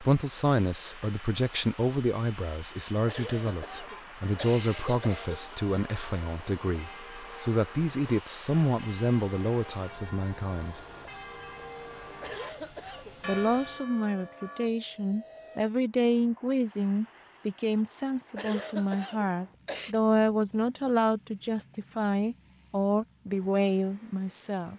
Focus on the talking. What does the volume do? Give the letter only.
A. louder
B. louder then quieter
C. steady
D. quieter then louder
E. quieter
C.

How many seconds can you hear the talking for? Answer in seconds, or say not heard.
22 s.